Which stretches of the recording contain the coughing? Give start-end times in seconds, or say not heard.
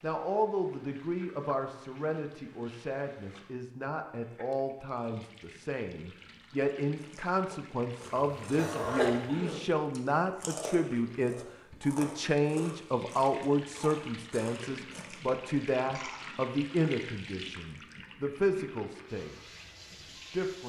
8.6-9.6.